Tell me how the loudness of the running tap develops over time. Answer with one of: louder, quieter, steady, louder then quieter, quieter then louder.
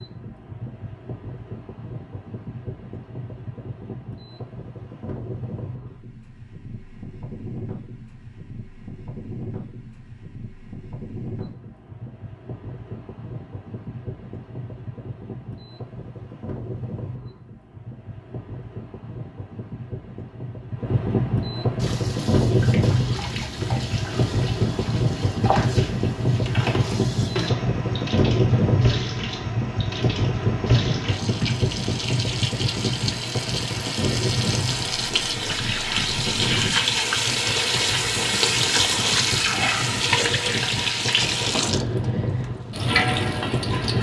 louder.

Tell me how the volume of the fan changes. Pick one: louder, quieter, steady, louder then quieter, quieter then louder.
louder then quieter.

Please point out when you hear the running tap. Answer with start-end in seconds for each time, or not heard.
21.8-43.9.